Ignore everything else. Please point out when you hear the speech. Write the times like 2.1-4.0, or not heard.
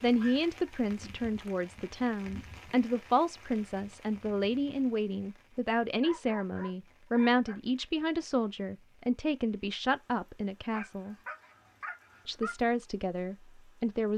0.0-11.2, 12.2-14.1.